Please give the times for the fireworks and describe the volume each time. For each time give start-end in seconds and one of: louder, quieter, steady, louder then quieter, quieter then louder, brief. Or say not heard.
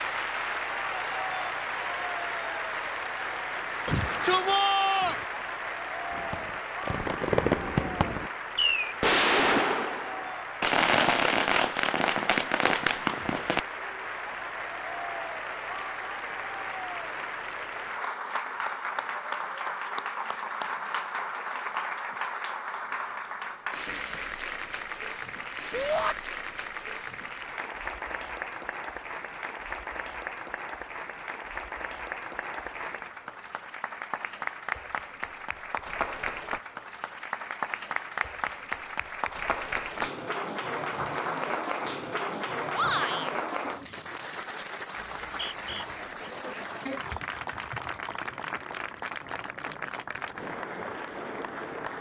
6.1-13.6 steady.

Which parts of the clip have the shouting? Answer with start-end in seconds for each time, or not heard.
3.9-5.2, 25.7-26.1, 42.7-43.3.